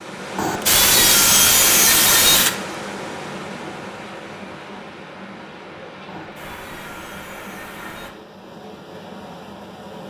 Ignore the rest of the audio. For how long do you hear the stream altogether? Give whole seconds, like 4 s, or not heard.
10 s.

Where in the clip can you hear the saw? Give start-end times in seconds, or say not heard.
0.3-2.5, 6.0-8.1.